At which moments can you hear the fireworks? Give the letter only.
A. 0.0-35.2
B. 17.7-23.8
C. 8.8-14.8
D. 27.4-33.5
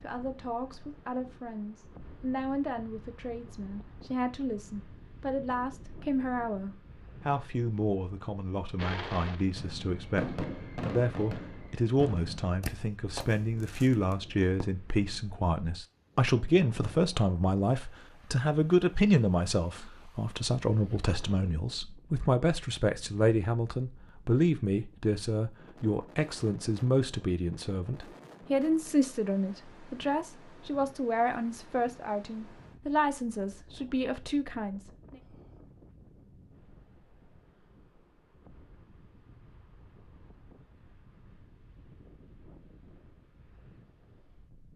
C.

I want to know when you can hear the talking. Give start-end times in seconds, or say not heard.
0.0-35.2.